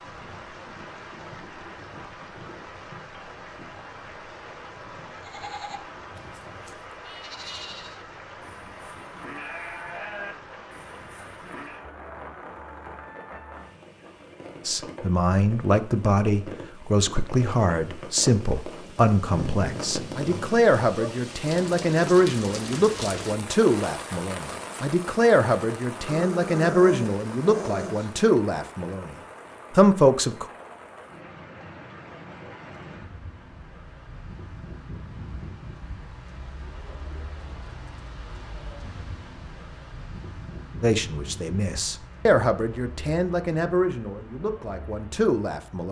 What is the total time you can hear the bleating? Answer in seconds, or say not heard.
7 s.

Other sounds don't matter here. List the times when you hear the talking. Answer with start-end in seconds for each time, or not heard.
14.7-30.4, 40.8-45.8.